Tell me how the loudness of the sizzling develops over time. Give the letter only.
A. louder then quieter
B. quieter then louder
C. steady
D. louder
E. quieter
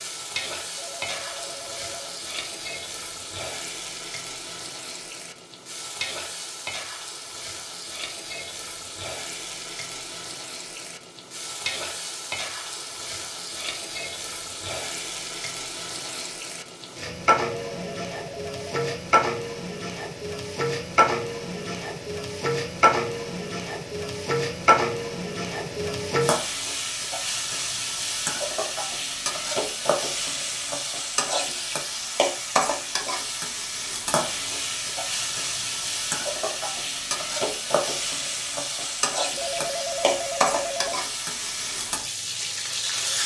D.